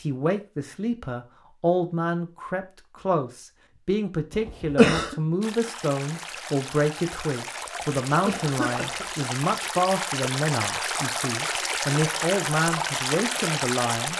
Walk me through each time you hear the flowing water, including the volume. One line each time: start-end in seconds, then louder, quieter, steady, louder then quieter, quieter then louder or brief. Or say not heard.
5.4-14.1 louder.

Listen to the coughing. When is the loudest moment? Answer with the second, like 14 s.
5 s.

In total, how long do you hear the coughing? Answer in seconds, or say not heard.
2 s.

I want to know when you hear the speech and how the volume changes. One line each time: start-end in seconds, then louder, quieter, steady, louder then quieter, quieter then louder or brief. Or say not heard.
0.0-14.1 steady.